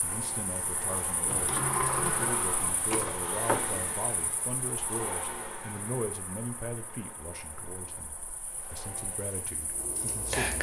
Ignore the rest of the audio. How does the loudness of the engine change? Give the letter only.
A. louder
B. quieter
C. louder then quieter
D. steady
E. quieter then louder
B.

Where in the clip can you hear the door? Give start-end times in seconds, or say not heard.
1.2-3.9.